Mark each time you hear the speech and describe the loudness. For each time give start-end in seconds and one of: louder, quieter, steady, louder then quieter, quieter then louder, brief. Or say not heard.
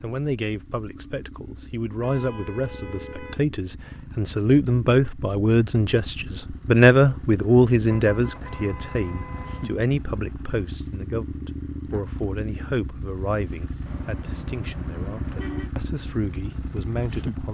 0.0-17.4 louder then quieter.